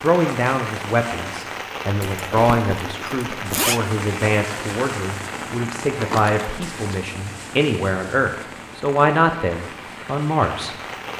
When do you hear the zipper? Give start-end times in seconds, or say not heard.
2.0-3.8, 6.0-7.0.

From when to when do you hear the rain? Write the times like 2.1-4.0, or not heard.
0.0-11.1.